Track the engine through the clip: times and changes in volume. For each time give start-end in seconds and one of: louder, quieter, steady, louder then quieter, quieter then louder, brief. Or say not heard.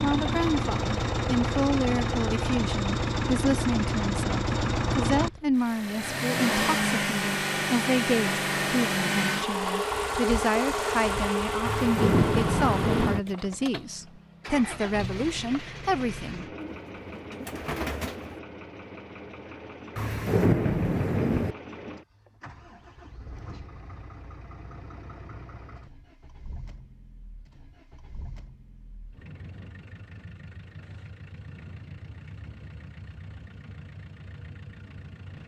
0.0-35.4 quieter.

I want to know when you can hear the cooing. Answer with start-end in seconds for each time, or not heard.
16.6-18.4.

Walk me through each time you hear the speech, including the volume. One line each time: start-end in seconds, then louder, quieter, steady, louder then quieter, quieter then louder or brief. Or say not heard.
0.0-16.4 steady.